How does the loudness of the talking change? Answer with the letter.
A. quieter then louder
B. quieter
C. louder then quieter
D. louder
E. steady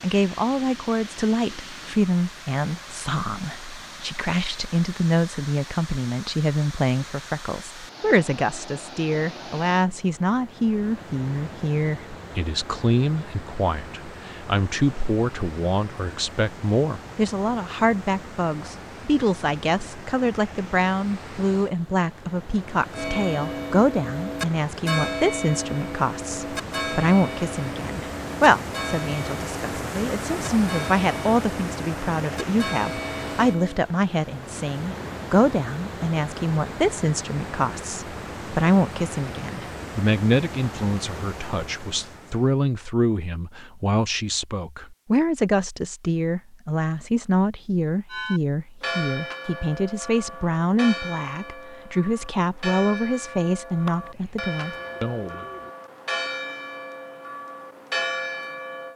E.